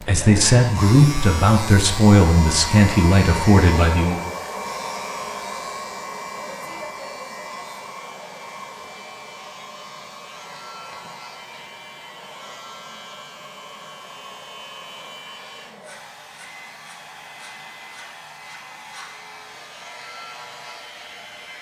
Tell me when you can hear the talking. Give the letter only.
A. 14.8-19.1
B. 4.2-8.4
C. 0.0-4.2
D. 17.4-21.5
C.